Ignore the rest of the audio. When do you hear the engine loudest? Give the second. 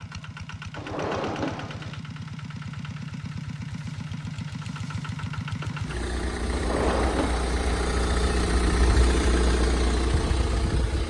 9 s.